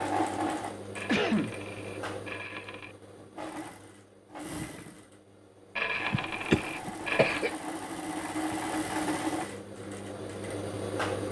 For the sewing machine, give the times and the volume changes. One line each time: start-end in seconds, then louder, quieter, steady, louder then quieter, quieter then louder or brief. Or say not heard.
0.0-11.2 quieter then louder.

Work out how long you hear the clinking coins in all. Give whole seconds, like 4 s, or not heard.
4 s.